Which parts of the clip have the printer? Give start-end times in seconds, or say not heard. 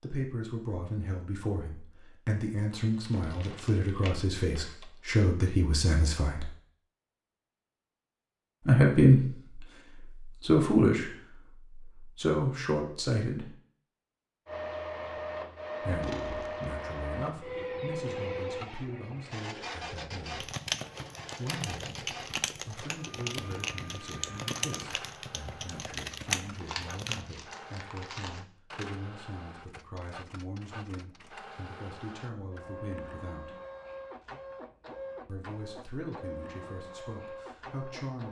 14.4-38.2.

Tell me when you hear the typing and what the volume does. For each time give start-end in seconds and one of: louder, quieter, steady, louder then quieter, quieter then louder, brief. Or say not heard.
20.4-27.2 louder.